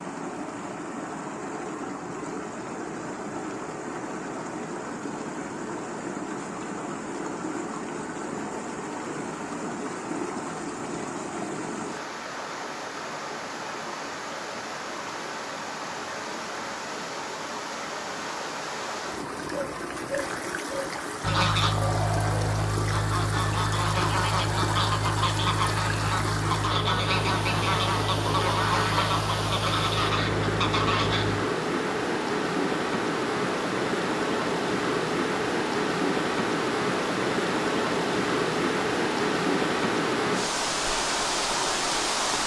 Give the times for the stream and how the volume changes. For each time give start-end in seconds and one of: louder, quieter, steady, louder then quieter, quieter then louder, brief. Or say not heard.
0.0-42.4 louder.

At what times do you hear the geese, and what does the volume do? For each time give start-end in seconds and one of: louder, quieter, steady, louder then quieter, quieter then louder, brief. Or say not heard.
21.2-31.4 steady.